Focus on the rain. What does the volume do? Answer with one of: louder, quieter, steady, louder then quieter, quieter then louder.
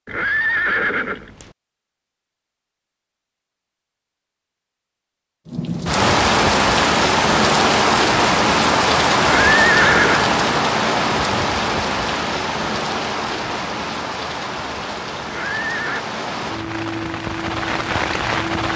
quieter.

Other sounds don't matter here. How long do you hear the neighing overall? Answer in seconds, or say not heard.
3 s.